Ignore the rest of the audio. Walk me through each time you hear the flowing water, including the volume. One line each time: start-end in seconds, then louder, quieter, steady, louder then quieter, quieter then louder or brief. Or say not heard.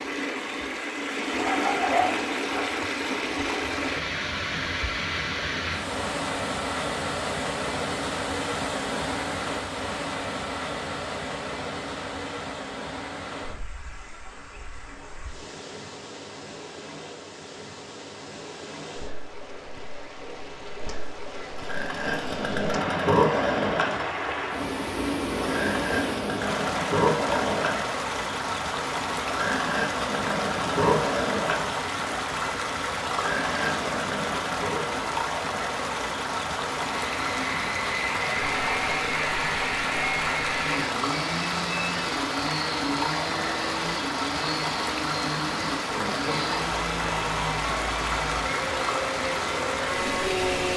0.0-50.7 quieter then louder.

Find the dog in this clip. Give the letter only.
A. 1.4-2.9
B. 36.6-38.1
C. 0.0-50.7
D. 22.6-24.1
A.